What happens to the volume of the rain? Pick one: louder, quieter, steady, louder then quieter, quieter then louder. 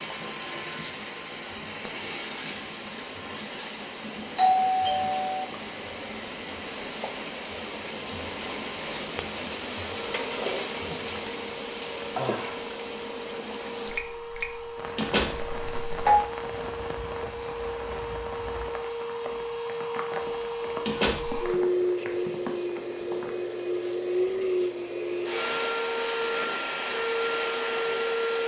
louder then quieter.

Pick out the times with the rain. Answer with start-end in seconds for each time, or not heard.
0.0-23.5.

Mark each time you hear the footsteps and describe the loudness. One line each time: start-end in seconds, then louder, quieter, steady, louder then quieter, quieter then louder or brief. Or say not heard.
not heard.